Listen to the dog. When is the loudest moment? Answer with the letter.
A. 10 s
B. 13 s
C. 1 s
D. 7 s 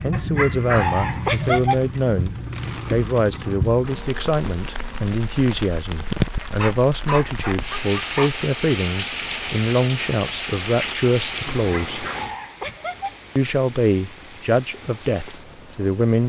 C.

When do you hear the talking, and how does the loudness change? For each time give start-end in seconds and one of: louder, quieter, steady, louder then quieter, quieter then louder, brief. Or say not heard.
0.0-12.1 steady
13.3-16.2 brief.